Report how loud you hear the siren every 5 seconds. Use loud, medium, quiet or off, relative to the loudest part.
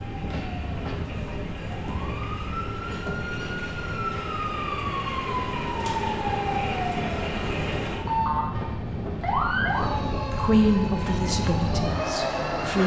medium, loud, medium.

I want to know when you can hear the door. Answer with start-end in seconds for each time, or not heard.
not heard.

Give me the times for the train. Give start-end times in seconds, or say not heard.
0.0-12.8.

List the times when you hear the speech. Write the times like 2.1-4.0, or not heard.
10.3-12.8.